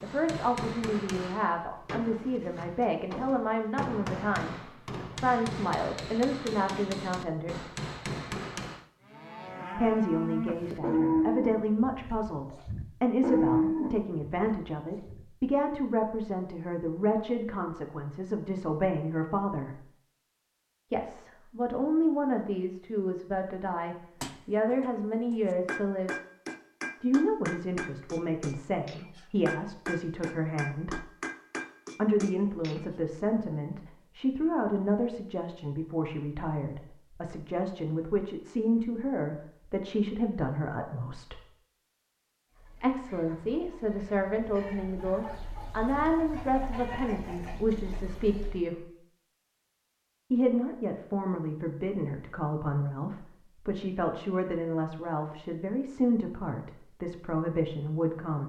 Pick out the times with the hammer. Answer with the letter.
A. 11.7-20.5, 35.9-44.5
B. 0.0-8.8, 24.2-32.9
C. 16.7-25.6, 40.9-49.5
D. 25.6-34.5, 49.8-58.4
B.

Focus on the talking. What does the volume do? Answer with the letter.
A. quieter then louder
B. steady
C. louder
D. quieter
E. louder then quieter
B.